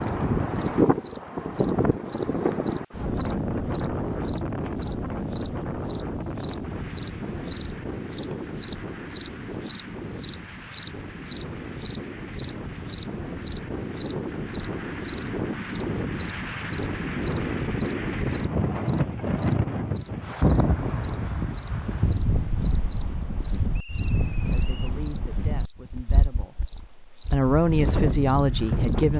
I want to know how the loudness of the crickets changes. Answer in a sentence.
The loudness of the crickets goes up, then down.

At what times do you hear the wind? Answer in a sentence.
The wind can be heard from 0.0 to 29.1 s.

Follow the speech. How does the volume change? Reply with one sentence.
The loudness of the speech goes down, then up.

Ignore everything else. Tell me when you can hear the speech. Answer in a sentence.
The speech can be heard from 24.4 to 29.1 s.